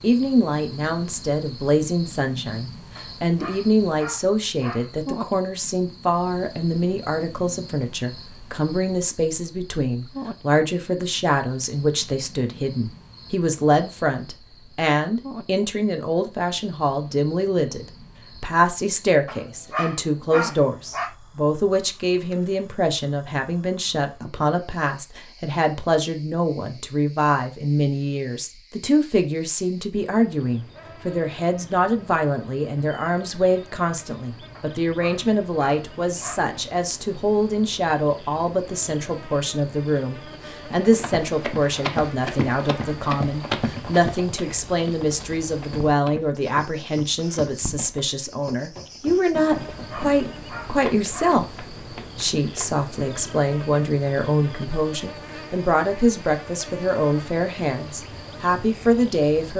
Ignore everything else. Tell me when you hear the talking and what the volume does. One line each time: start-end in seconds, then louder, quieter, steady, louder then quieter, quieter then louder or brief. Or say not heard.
0.0-59.5 steady.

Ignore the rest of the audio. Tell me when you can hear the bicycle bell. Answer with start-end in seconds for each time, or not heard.
not heard.